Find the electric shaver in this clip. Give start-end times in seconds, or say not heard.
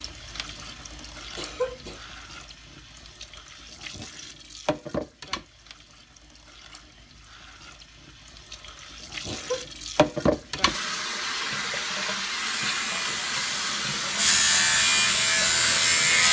12.6-16.2.